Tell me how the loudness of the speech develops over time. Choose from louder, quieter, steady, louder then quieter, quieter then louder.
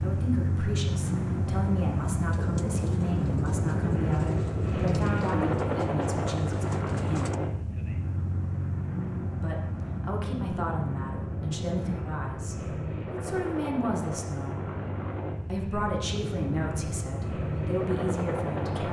steady.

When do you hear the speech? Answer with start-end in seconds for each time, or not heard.
0.0-7.4, 9.4-14.7, 15.4-18.8.